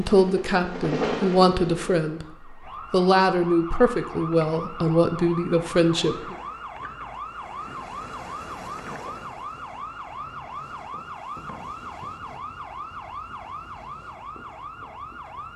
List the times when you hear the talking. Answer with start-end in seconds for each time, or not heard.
0.0-6.3.